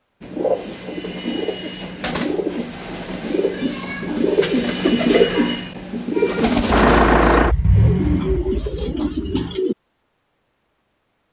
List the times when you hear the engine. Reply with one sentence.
You can hear the engine from 6.7 to 9.6 s.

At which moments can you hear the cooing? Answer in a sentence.
The cooing can be heard from 0.2 to 9.8 s.